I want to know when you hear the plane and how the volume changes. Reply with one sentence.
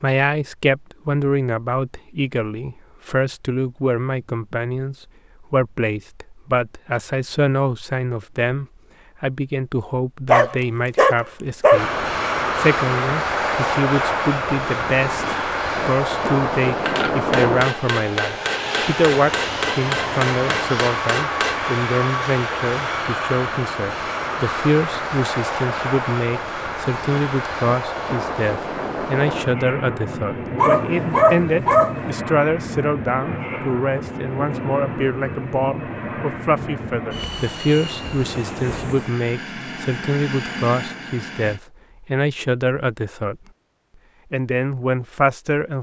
The plane can be heard from 11.7 to 41.6 s, getting quieter.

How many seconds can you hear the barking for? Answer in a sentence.
You can hear the barking for 3 seconds altogether.